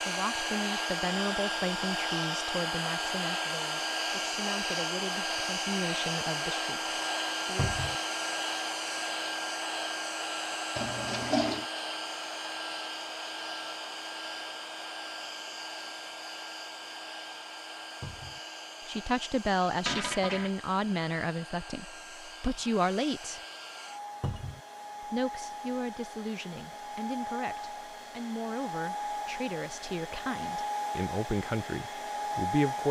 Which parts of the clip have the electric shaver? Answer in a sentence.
You can't hear the electric shaver here.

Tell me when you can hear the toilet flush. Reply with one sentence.
The toilet flush can be heard from 10.8 to 11.7 s and from 19.9 to 20.5 s.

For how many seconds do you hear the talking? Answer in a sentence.
You can hear the talking for 20 seconds altogether.